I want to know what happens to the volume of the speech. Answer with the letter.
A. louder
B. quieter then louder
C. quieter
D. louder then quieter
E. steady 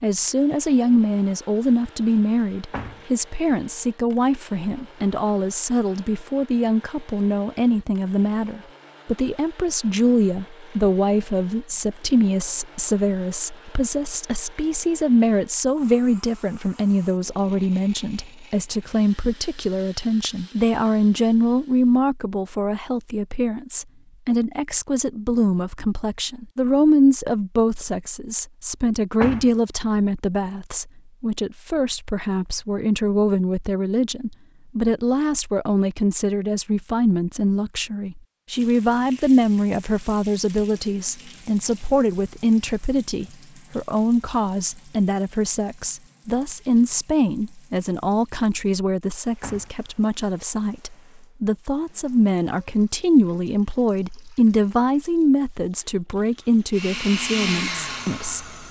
E.